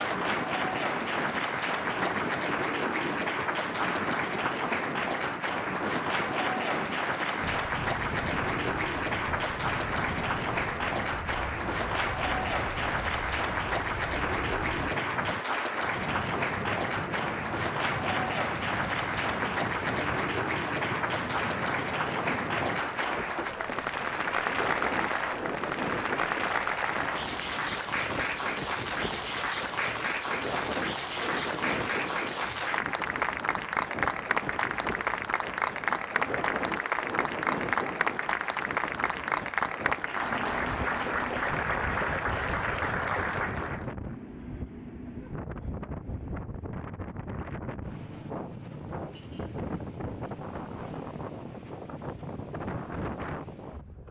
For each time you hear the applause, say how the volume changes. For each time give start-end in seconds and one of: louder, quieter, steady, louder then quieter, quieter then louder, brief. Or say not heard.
0.0-43.9 steady.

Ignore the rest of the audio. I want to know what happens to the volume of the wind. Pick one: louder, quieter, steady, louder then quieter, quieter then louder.
steady.